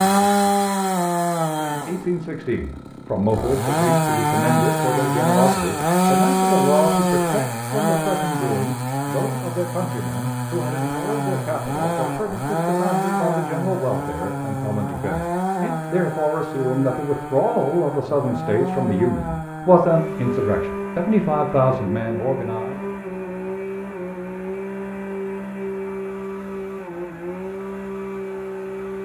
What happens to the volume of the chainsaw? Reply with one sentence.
The volume of the chainsaw goes down.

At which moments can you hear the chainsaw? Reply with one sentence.
You can hear the chainsaw from 0.0 to 29.0 s.